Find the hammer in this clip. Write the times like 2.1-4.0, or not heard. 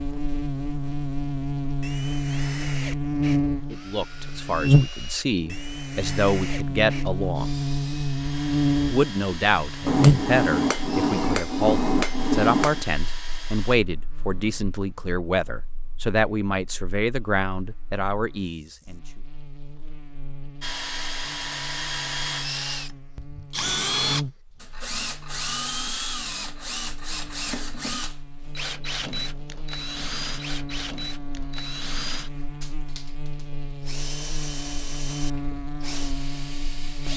9.8-12.8.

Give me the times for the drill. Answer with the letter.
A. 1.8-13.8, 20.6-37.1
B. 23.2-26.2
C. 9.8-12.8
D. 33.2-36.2
A.